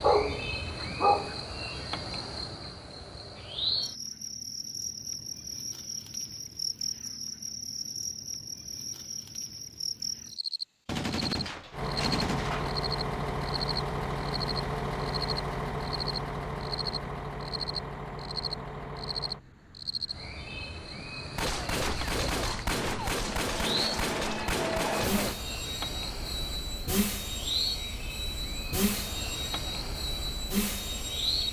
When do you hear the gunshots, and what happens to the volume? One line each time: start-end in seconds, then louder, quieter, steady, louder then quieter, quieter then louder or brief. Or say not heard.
10.8-12.8 brief
21.4-25.4 steady.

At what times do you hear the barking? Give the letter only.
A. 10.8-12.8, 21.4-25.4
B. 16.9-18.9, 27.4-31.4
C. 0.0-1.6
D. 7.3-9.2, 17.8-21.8
C.